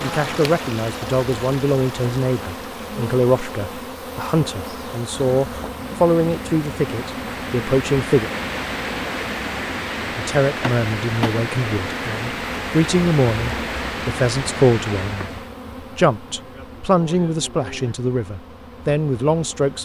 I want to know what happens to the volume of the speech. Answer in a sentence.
The volume of the speech stays about the same.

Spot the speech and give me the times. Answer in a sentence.
The speech can be heard from 0.0 to 8.3 s and from 10.1 to 19.7 s.